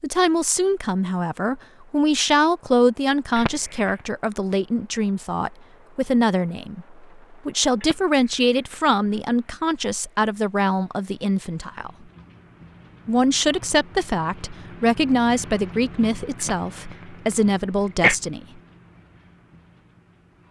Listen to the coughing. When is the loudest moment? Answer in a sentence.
The loudest moment of the coughing is at 18 seconds.